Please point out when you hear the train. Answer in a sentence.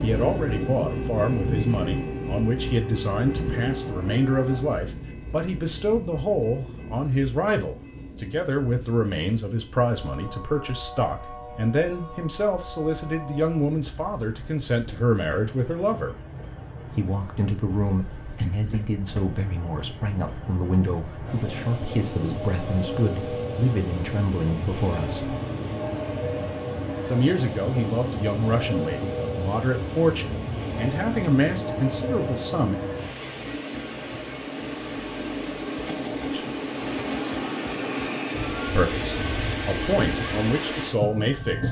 You can hear the train from 0.0 to 41.6 s.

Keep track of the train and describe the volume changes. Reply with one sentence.
The volume of the train goes down, then up.